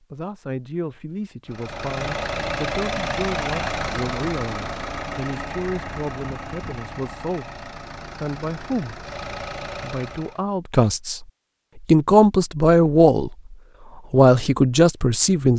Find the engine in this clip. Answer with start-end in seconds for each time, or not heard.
1.4-10.4.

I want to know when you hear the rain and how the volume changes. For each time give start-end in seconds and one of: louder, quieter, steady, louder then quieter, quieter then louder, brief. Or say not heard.
not heard.